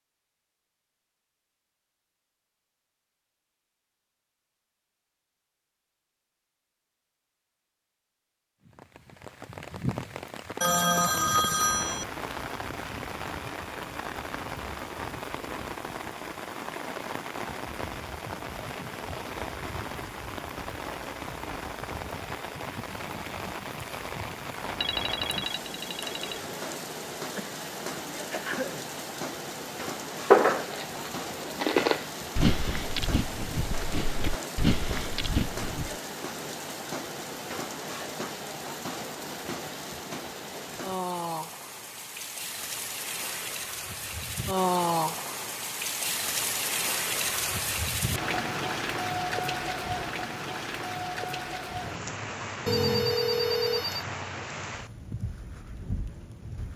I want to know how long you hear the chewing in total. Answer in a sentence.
The chewing can be heard for 6 seconds in total.